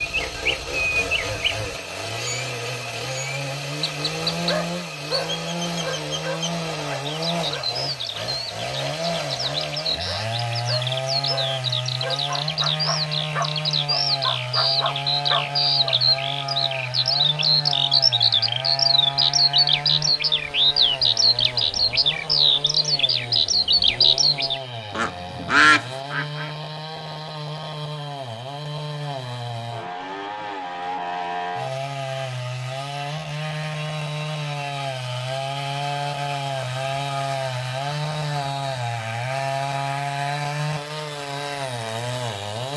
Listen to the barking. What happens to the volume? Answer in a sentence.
The volume of the barking goes down, then up.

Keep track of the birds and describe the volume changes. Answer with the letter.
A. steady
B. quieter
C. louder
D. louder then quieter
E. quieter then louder
C.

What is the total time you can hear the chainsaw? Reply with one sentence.
The chainsaw can be heard for 43 seconds in total.